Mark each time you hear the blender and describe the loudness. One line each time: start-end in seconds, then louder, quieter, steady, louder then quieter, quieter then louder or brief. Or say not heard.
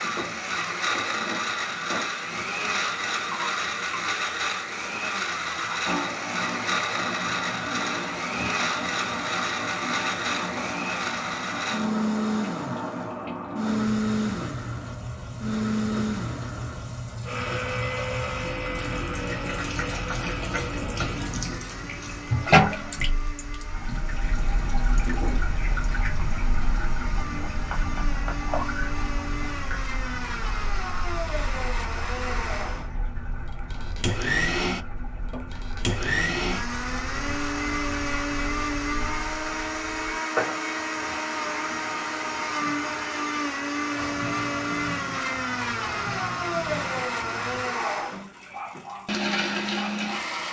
0.0-50.4 quieter then louder.